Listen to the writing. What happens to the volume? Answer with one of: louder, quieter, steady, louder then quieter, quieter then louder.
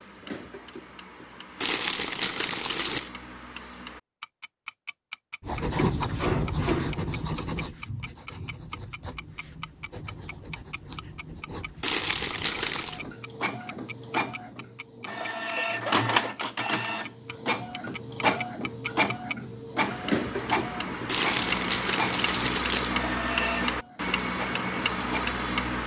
quieter.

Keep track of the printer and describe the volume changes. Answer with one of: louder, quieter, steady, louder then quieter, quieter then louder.
louder then quieter.